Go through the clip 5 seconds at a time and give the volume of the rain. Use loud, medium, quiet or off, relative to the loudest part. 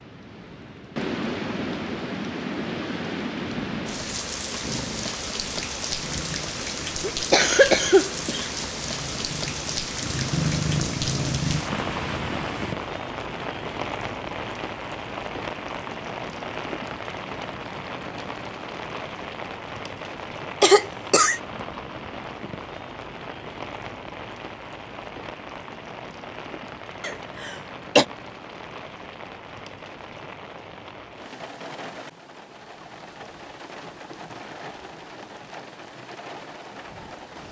loud, loud, loud, loud, medium, medium, medium, medium.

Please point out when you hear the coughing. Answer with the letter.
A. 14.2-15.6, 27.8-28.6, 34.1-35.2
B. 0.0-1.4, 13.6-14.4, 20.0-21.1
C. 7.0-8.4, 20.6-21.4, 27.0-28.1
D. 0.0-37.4
C.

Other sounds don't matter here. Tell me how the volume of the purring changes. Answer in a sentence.
The volume of the purring goes up.